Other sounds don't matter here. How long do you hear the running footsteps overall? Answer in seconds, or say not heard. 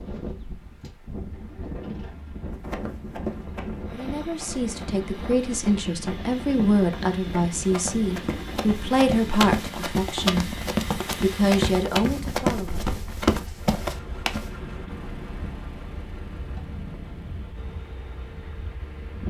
12 s.